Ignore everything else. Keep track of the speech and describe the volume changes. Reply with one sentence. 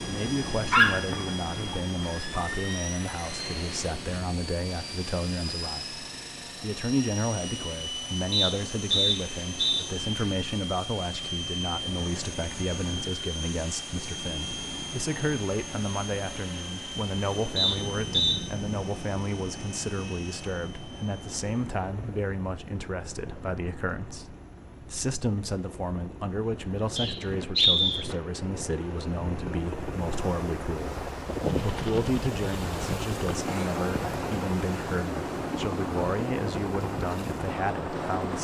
The loudness of the speech stays about the same.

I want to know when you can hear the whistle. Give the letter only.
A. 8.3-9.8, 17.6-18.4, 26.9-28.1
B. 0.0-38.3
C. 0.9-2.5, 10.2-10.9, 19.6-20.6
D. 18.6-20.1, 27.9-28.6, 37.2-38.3
A.